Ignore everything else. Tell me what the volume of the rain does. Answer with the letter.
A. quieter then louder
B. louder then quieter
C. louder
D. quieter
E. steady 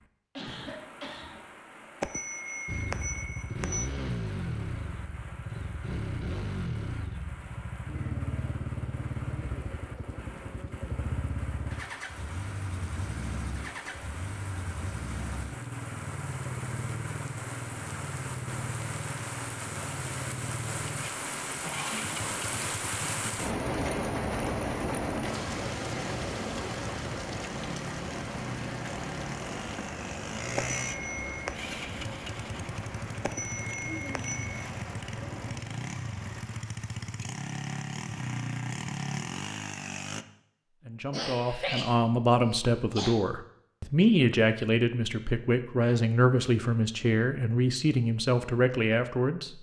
B.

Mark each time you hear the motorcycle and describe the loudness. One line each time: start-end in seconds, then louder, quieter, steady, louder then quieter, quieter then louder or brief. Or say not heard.
2.6-40.2 steady.